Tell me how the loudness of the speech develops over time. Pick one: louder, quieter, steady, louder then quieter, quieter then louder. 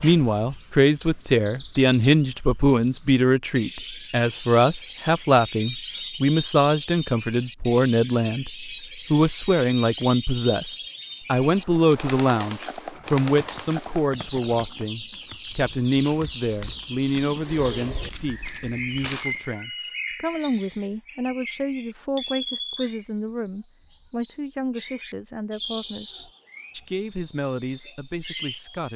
quieter.